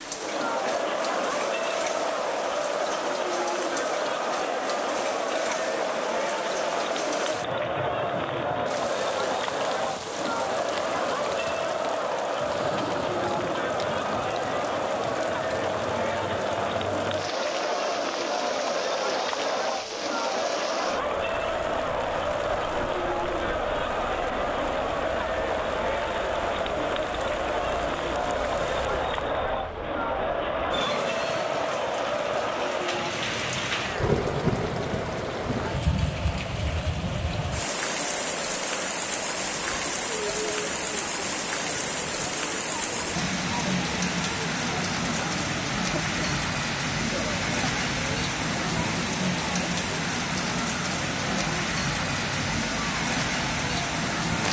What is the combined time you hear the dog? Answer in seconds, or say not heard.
not heard.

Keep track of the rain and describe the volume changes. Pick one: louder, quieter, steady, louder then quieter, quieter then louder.
louder.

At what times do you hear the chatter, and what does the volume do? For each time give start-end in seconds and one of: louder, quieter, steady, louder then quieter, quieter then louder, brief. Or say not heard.
0.0-54.4 quieter.